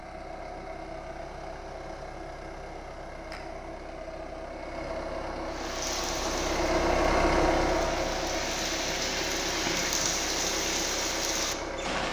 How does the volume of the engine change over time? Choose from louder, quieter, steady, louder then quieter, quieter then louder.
louder then quieter.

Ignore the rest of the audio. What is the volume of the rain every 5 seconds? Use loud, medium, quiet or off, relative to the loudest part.
off, loud, loud.